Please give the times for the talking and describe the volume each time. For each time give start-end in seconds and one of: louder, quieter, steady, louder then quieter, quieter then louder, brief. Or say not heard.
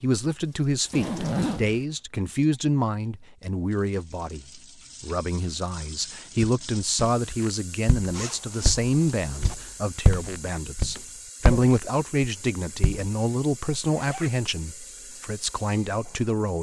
0.0-16.5 steady.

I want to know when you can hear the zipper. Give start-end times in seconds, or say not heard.
0.9-1.9, 8.1-9.6, 13.8-14.3.